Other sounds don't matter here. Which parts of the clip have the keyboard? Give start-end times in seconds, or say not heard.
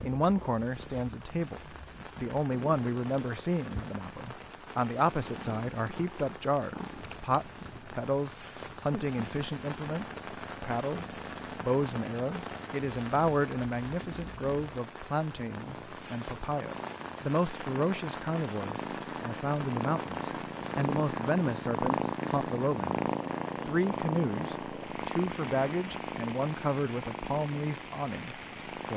not heard.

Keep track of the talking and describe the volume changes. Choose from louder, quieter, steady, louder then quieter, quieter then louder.
steady.